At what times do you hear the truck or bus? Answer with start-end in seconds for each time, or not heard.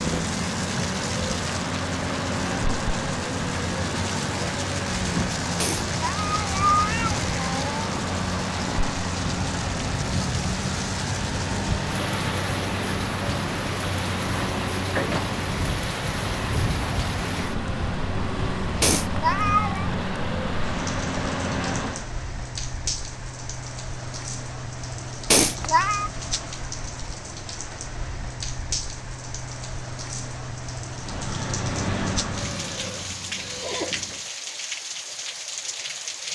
0.0-22.1, 30.9-34.3.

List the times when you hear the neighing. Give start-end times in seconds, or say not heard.
32.5-34.2.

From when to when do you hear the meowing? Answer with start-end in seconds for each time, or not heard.
5.6-7.9, 18.8-19.9, 25.3-26.1.